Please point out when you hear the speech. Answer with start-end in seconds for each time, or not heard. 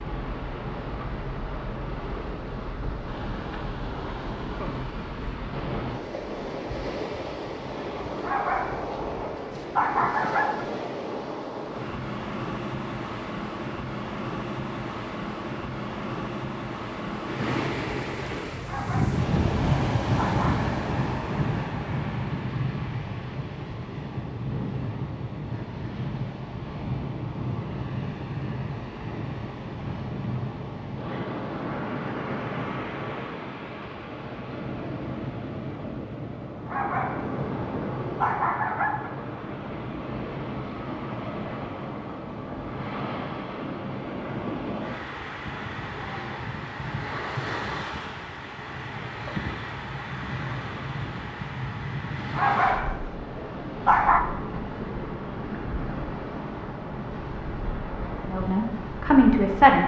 58.2-59.8.